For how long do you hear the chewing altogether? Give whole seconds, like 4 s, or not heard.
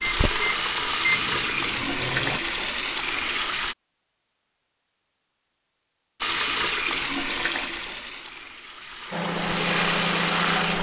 not heard.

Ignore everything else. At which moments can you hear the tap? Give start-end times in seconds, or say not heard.
0.0-3.8, 6.2-10.7.